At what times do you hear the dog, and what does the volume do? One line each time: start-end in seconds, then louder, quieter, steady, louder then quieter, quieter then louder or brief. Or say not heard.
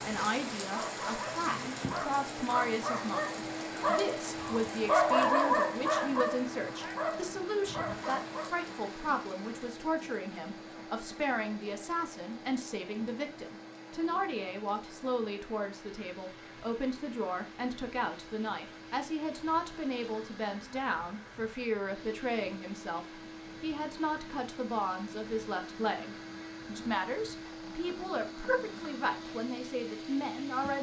0.6-8.5 louder then quieter.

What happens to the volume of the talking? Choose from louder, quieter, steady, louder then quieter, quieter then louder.
steady.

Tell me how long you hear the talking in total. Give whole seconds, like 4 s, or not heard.
31 s.